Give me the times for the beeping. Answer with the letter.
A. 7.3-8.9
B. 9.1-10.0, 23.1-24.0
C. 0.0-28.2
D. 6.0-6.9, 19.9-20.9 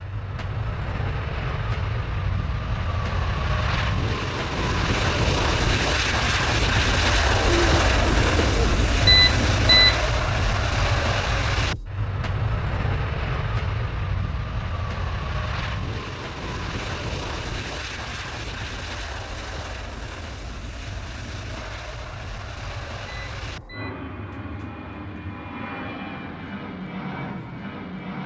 B.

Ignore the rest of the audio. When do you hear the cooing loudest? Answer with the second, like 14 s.
8 s.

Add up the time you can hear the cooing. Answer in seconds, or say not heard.
2 s.